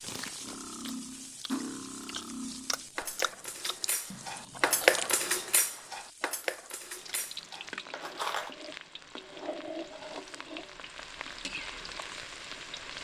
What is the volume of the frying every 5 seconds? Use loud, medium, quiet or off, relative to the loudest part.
medium, loud, loud.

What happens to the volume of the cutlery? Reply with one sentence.
The volume of the cutlery goes up, then down.